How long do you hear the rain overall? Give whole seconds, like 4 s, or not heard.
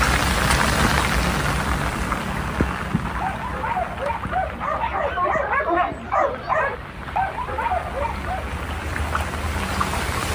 10 s.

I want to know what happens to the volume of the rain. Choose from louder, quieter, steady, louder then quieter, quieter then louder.
quieter then louder.